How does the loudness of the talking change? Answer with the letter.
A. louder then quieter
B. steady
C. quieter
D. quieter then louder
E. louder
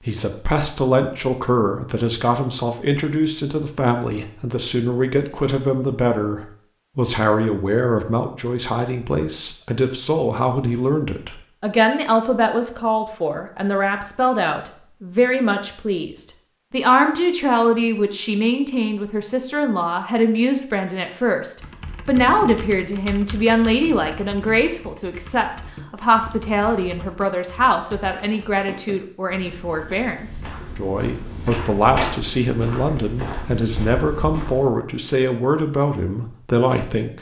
B.